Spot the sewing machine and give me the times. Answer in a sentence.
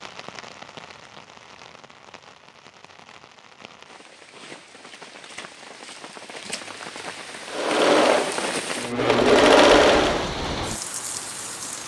The sewing machine can be heard from 7.5 to 10.3 s.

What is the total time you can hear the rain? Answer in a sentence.
The rain can be heard for 12 seconds in total.